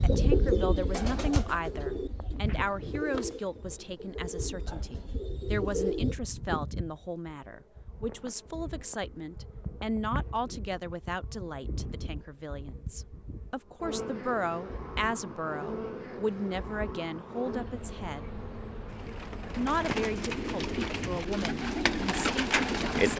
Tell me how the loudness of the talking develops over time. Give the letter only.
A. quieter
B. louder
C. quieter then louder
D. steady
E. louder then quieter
D.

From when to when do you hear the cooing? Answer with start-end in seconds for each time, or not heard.
0.0-6.2, 18.9-23.1.